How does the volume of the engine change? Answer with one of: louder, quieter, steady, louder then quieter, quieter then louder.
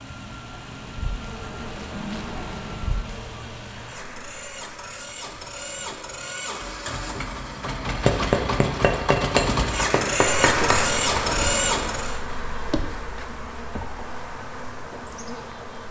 louder.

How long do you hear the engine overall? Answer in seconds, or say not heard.
12 s.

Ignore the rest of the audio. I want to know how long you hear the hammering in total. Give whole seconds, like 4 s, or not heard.
3 s.